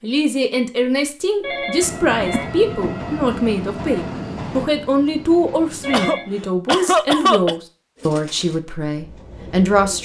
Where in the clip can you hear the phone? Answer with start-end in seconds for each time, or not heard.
1.4-2.5, 5.8-6.5.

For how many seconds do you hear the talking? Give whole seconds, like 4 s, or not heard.
10 s.